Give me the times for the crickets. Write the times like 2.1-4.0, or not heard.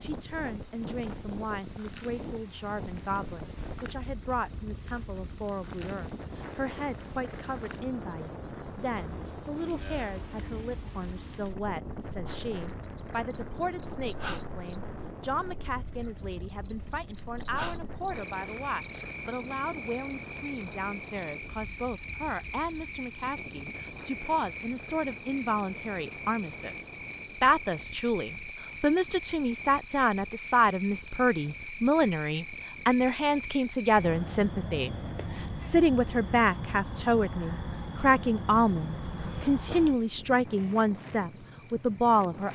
0.0-42.5.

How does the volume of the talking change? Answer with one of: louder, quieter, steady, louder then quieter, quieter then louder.
louder.